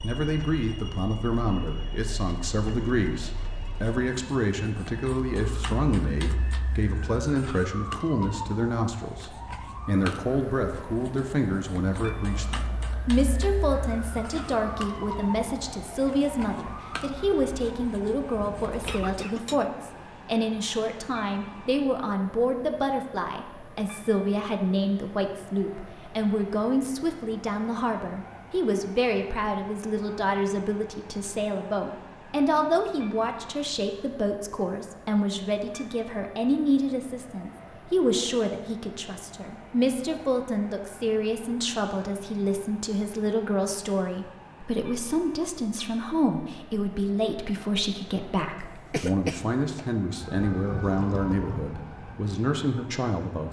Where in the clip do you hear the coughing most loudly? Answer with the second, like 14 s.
49 s.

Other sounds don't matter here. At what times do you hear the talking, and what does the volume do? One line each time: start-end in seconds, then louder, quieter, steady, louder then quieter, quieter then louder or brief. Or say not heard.
0.0-53.4 steady.